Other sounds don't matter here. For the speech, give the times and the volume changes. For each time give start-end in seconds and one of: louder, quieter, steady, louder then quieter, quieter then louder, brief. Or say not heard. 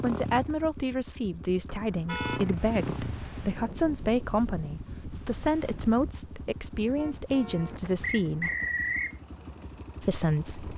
0.0-8.5 steady
10.0-10.7 brief.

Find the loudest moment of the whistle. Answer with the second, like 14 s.
9 s.